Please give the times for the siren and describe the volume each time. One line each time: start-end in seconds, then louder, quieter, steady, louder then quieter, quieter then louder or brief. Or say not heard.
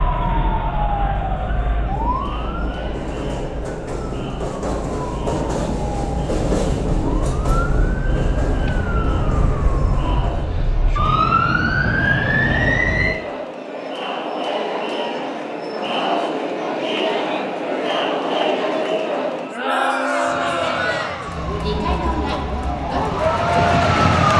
0.0-13.2 quieter then louder
20.2-24.3 louder.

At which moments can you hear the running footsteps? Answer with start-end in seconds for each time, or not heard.
not heard.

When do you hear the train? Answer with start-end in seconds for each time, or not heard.
0.0-10.6.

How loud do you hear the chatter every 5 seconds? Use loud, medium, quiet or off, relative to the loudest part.
medium, quiet, medium, loud, loud.